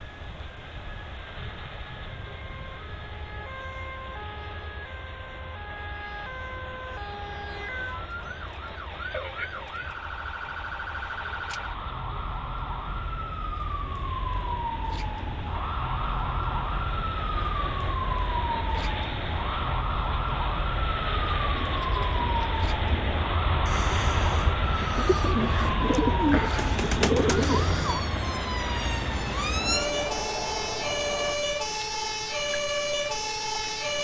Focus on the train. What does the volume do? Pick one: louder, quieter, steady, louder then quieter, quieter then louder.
louder.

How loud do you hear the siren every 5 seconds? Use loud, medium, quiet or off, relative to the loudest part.
quiet, medium, medium, loud, loud, loud, loud.